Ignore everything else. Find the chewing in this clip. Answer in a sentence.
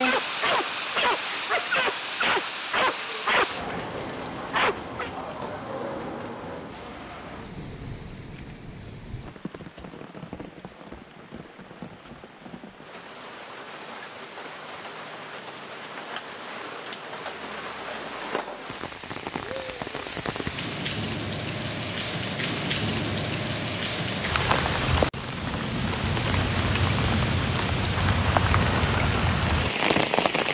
You can't hear the chewing here.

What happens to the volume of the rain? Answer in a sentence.
The volume of the rain goes down, then up.